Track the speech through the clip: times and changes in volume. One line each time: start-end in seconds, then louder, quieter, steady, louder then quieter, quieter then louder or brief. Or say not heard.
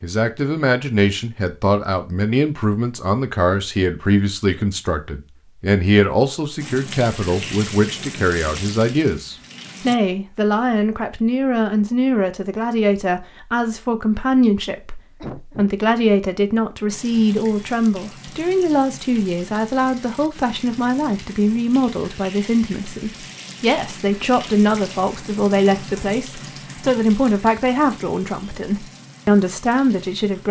0.0-30.4 steady.